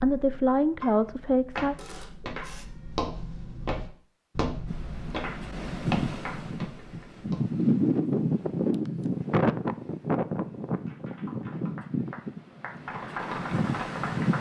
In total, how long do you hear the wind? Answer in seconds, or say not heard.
10 s.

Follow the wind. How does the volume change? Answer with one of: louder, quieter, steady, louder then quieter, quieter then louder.
louder then quieter.